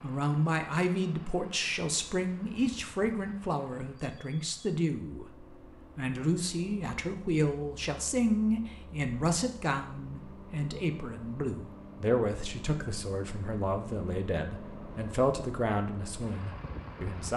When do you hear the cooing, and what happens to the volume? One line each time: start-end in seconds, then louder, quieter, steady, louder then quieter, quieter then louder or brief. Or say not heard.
not heard.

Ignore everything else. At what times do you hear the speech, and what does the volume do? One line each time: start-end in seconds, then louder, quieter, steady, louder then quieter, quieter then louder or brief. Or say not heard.
0.0-17.3 steady.